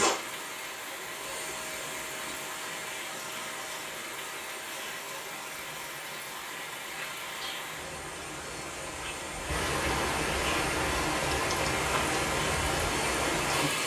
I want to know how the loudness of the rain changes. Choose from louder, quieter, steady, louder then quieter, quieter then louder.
louder.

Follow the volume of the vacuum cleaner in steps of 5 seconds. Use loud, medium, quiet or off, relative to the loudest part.
loud, medium, loud.